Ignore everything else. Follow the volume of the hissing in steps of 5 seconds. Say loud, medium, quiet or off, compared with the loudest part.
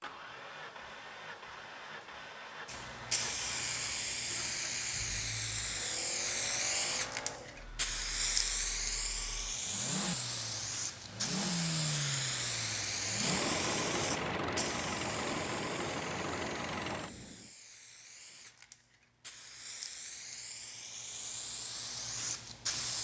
loud, loud, loud, quiet, medium.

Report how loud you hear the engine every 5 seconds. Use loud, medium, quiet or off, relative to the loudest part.
medium, medium, loud, loud, off.